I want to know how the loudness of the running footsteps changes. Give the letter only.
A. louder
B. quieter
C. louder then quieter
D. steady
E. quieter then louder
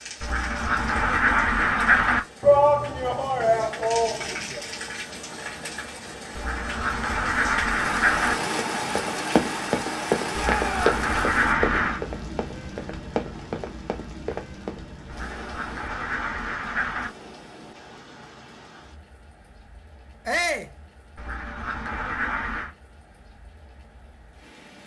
B.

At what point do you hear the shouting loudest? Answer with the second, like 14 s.
3 s.